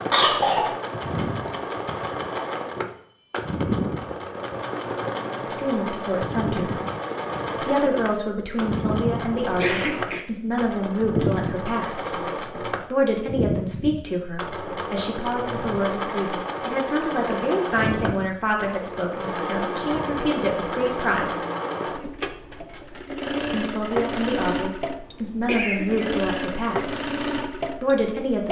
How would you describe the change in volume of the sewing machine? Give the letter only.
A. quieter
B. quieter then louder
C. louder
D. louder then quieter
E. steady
E.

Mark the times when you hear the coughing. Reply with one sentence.
You can hear the coughing from 0.1 to 0.8 s, from 9.6 to 10.2 s and from 25.4 to 26.1 s.